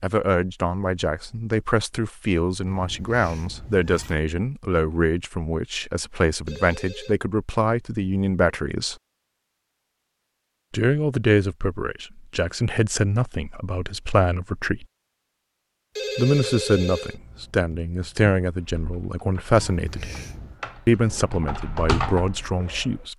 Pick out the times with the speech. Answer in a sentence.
You can hear the speech from 0.0 to 8.9 s, from 10.7 to 14.8 s, from 16.1 to 20.1 s and from 20.9 to 23.1 s.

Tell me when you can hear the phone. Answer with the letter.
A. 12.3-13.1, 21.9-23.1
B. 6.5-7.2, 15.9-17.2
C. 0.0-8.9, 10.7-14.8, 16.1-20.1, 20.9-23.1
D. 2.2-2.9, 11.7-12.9
B.